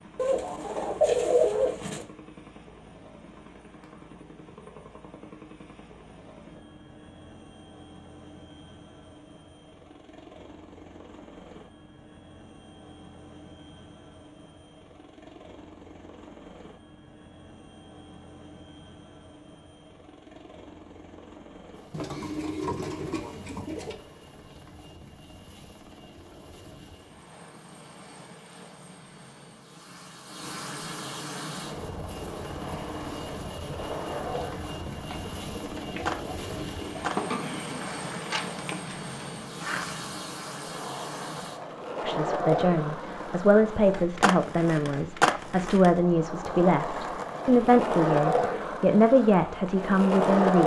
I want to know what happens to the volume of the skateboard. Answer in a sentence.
The loudness of the skateboard goes up.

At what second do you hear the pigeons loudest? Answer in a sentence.
The volume of the pigeons peaks at 1 second.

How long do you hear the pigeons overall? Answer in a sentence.
You can hear the pigeons for 7 seconds altogether.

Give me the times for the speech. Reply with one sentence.
You can hear the speech from 42.0 to 50.6 s.